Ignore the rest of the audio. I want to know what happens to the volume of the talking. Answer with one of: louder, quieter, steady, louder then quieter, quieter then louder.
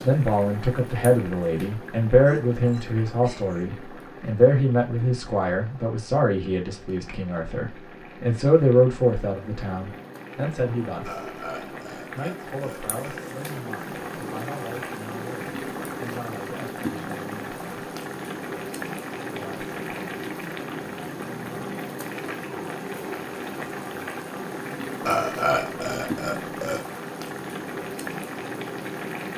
quieter.